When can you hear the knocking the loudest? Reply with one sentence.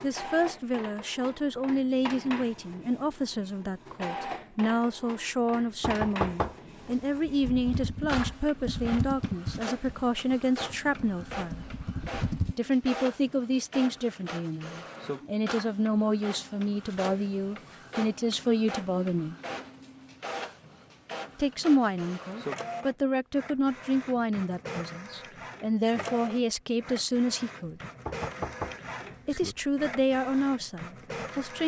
The volume of the knocking peaks at 6 seconds.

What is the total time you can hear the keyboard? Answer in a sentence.
You can hear the keyboard for 5 seconds altogether.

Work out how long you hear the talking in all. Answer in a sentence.
You can hear the talking for 27 seconds altogether.